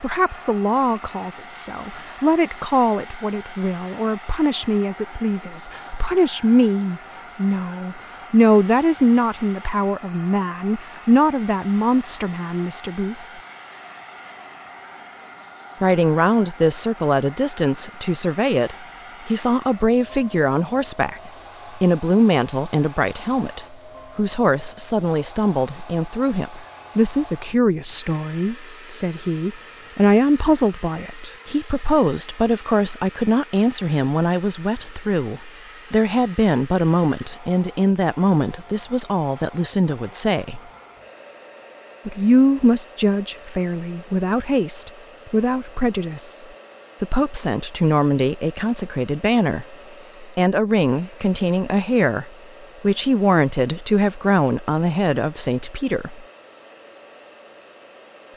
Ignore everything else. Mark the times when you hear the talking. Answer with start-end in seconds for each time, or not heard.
0.0-13.2, 15.8-40.6, 42.0-56.2.